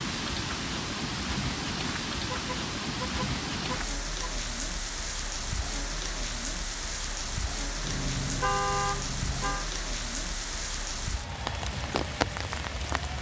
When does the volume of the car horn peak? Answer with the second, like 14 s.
9 s.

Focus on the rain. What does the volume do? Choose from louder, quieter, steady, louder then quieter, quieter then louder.
steady.